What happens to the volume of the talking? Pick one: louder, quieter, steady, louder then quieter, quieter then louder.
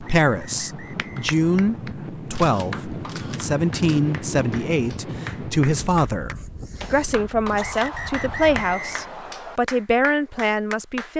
steady.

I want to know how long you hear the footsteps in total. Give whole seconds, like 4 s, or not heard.
not heard.